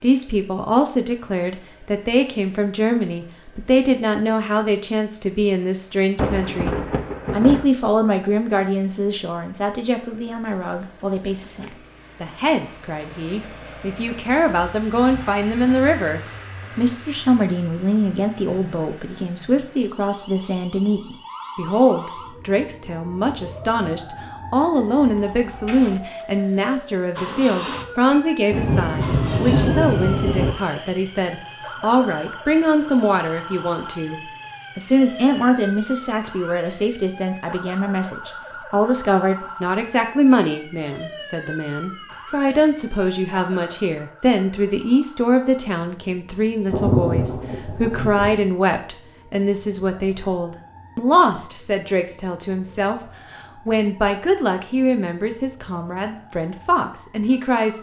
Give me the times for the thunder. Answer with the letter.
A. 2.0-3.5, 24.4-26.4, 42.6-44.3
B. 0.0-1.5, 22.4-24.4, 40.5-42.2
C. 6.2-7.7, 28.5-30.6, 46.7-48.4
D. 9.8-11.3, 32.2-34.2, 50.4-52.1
C.